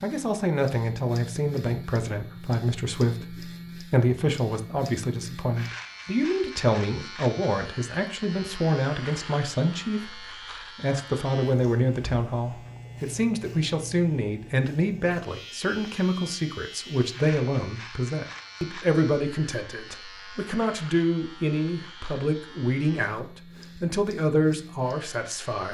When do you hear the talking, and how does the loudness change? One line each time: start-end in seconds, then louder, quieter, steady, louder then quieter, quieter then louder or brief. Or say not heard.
0.0-25.6 steady.